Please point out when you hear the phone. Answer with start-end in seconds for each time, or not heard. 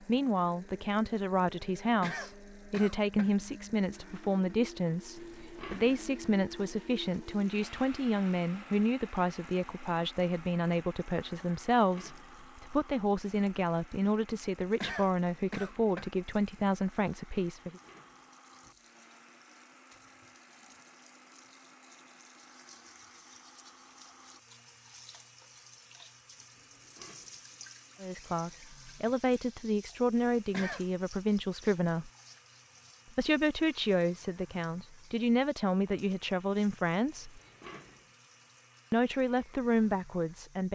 not heard.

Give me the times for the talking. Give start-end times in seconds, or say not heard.
0.0-17.8, 28.0-32.1, 33.1-37.4, 38.9-40.7.